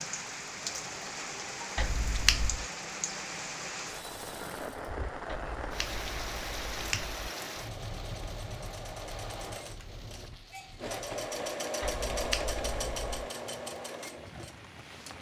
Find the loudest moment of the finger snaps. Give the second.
2 s.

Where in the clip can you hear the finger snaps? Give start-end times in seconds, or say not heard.
1.8-2.6, 5.2-7.3, 11.8-13.3.